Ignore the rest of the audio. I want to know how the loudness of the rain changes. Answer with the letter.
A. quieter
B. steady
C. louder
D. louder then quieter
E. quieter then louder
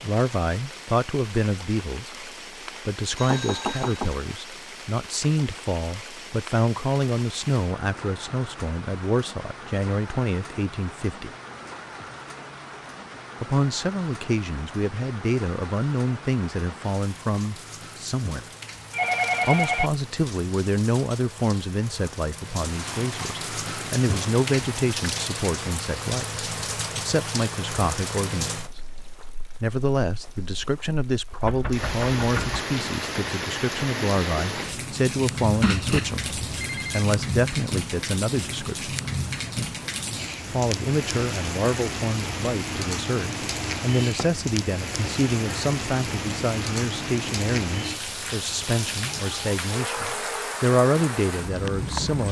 C.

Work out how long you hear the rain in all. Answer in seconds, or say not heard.
52 s.